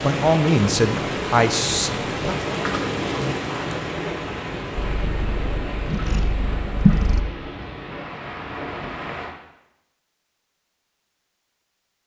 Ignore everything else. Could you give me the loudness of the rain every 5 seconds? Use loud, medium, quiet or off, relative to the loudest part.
loud, medium, off.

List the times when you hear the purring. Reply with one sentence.
The purring can be heard from 4.8 to 7.2 s.